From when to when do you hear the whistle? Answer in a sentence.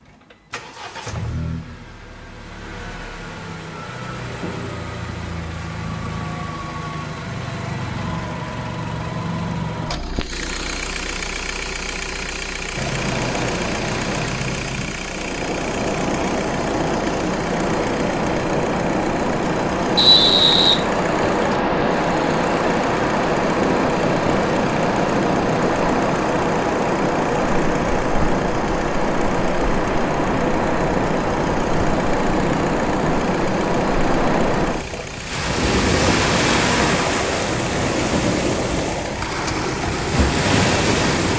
You can hear the whistle from 19.9 to 21.4 s.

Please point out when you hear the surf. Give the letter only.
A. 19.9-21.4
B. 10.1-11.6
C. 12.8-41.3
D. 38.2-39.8
C.